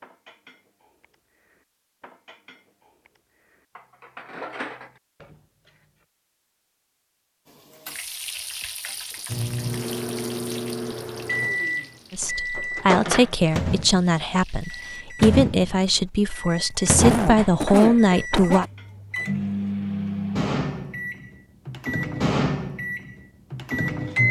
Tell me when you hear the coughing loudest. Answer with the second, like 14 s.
17 s.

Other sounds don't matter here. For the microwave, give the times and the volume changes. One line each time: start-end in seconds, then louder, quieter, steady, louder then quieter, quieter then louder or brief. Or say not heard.
9.3-24.2 steady.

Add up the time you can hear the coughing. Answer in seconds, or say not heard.
2 s.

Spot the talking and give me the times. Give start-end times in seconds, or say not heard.
12.1-18.6.